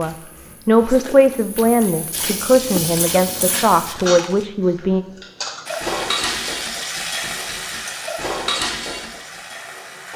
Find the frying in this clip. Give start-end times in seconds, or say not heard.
0.0-4.0, 5.7-10.1.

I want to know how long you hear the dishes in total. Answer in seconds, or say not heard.
6 s.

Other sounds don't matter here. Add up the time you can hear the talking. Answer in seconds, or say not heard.
5 s.